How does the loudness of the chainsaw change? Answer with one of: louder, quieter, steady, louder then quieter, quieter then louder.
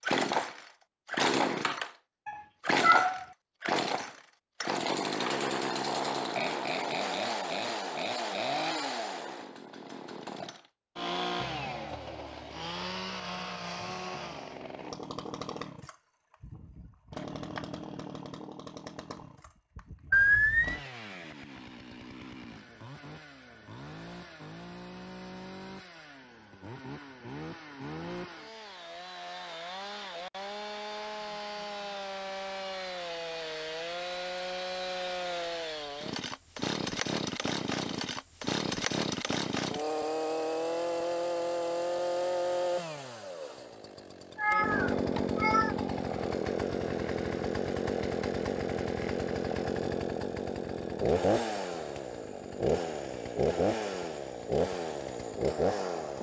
quieter then louder.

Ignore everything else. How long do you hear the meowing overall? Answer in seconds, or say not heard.
3 s.